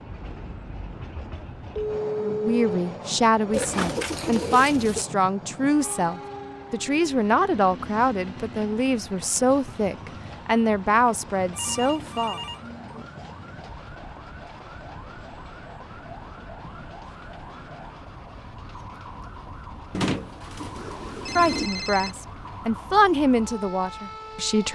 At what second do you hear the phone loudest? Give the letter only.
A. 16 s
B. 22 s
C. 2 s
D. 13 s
C.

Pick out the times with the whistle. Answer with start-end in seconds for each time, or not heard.
not heard.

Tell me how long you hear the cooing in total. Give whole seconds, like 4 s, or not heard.
3 s.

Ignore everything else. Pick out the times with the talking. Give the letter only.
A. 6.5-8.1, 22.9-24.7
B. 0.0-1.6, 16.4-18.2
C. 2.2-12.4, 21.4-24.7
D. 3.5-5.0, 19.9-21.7
C.